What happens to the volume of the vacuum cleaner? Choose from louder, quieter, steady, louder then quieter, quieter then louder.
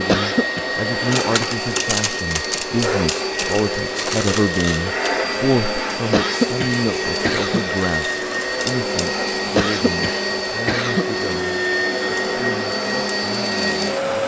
steady.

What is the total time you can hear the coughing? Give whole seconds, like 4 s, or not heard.
4 s.